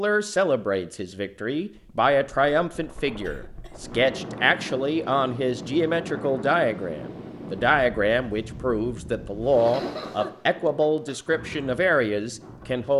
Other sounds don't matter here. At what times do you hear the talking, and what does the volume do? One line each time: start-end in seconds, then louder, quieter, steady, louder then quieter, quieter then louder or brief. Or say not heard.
0.0-12.9 steady.